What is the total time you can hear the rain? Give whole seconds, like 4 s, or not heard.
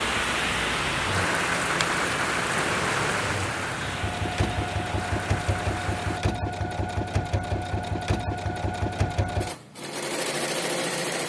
6 s.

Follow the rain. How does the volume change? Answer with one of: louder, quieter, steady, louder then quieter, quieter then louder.
quieter.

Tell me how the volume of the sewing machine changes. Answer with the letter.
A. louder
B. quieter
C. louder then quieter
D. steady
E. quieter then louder
A.